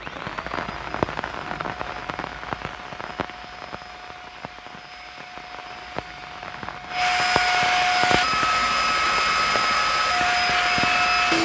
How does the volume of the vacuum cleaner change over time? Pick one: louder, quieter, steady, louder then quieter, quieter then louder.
louder.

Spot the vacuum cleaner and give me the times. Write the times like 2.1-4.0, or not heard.
0.0-11.3.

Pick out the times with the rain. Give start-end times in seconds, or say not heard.
0.0-11.3.